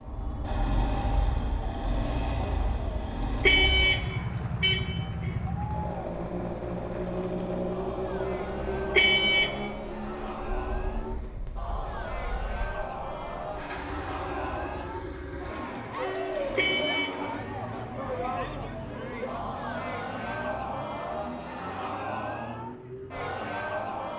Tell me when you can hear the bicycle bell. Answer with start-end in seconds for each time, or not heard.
not heard.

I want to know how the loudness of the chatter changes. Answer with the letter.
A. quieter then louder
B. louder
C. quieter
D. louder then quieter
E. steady
B.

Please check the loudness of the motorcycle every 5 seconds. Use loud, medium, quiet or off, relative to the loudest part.
loud, loud, medium, medium, medium.